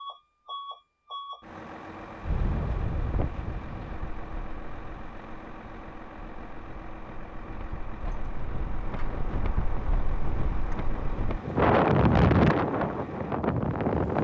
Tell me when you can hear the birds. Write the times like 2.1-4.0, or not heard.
not heard.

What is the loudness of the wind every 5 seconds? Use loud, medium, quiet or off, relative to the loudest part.
quiet, quiet, loud.